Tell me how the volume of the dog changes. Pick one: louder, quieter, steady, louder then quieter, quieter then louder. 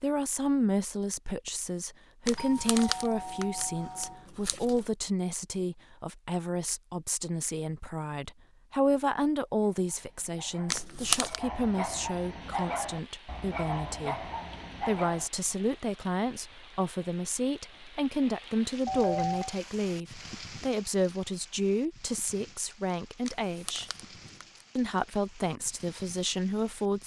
louder.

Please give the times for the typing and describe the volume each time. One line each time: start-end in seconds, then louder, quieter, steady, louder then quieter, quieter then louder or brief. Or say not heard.
not heard.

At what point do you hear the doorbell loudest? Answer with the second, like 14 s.
19 s.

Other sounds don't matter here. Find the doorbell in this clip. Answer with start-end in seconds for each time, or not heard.
2.4-4.2, 18.9-19.6.